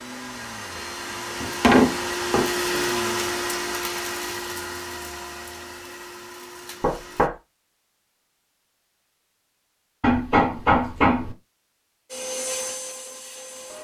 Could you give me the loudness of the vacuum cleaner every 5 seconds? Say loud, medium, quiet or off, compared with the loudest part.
loud, medium, medium.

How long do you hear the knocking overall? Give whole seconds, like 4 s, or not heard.
3 s.